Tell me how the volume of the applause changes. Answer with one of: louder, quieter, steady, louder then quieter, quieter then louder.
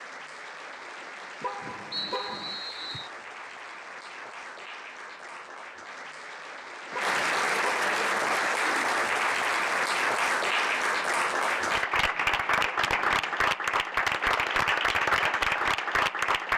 louder.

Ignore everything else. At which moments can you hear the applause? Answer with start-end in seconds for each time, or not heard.
0.0-16.5.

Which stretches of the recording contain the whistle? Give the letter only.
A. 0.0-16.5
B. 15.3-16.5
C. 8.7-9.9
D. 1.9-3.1
D.